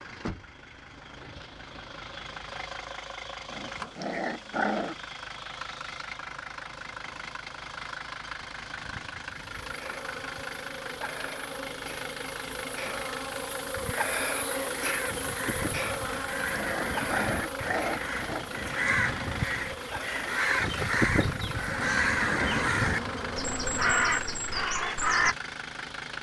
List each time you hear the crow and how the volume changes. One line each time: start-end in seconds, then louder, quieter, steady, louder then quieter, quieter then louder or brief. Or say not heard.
13.8-25.4 louder.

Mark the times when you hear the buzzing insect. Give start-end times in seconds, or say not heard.
9.4-24.3.